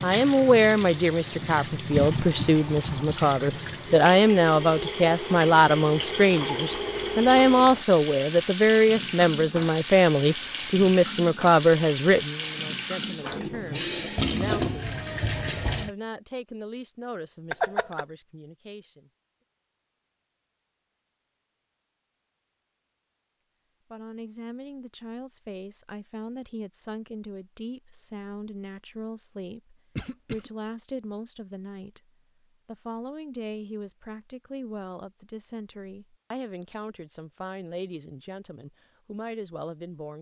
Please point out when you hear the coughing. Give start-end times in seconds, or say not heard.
1.9-3.2, 17.5-18.1, 29.9-30.5.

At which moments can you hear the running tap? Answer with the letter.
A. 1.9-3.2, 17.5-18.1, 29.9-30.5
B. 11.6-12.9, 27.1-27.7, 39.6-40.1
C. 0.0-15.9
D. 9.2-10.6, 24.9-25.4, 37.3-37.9
C.